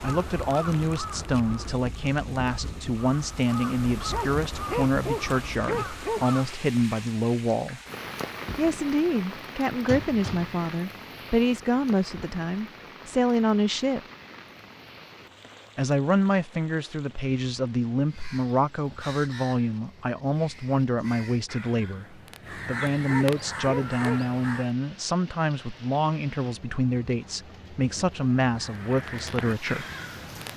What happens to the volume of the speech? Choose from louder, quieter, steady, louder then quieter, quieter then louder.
steady.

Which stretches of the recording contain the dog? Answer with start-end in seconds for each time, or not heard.
4.1-6.5, 23.1-24.2.